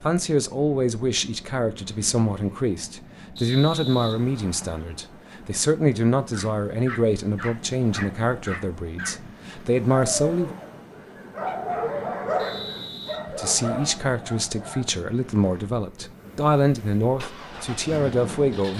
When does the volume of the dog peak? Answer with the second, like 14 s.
12 s.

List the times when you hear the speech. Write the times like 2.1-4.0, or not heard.
0.0-10.6, 13.2-18.7.